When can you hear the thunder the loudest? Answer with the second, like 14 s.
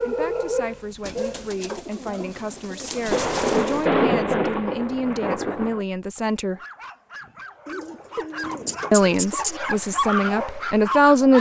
4 s.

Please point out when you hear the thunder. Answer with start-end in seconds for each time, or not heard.
3.0-5.8.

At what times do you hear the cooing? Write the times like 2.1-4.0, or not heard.
1.0-3.9, 7.7-9.6.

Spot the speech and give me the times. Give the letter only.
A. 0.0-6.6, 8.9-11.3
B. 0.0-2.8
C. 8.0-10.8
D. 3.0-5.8
A.